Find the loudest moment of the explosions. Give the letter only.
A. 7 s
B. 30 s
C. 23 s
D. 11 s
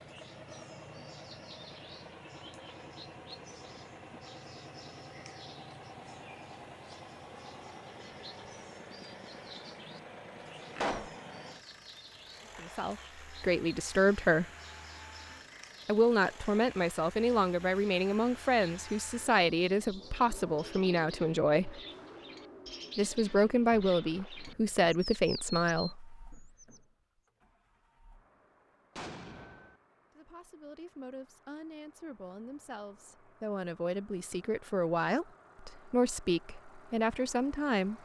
D.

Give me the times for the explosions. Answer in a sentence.
You can hear the explosions from 10.8 to 11.2 s and from 28.9 to 29.8 s.